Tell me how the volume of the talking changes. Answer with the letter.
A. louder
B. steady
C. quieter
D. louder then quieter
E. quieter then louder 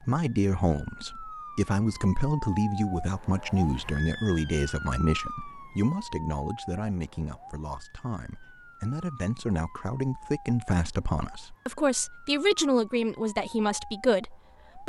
E.